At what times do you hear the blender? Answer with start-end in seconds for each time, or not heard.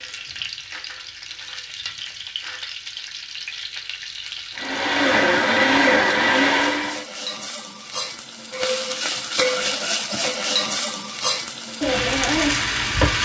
4.5-7.0.